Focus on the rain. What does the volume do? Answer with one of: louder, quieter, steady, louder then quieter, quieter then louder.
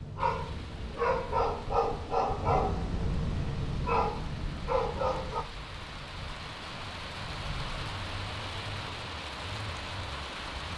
louder.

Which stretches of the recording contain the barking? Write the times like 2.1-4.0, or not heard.
0.0-5.5.